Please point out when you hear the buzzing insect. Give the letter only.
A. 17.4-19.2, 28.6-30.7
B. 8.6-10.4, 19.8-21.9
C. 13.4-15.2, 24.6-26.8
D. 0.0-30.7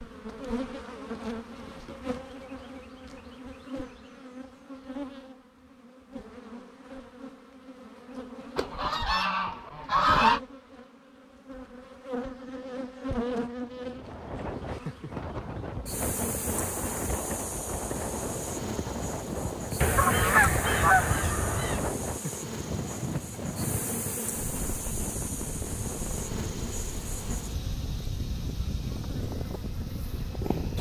D.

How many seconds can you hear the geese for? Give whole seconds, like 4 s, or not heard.
4 s.